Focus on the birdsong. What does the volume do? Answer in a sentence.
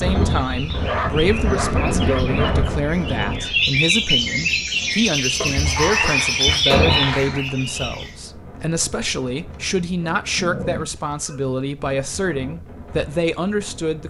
The loudness of the birdsong goes up.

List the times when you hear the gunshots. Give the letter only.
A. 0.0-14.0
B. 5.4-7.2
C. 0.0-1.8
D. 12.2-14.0
B.